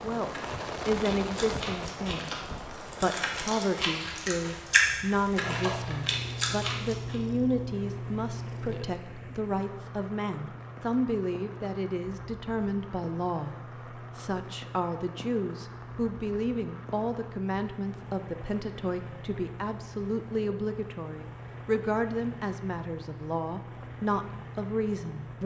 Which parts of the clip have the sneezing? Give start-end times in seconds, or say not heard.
not heard.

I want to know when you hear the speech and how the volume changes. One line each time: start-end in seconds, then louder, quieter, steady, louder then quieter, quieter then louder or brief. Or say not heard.
0.0-25.4 steady.